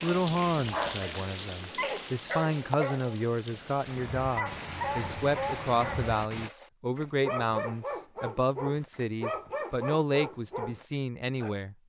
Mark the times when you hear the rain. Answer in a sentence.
The rain can be heard from 0.0 to 6.5 s.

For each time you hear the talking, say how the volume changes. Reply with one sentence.
You can hear the talking from 0.0 to 11.8 s, at a steady volume.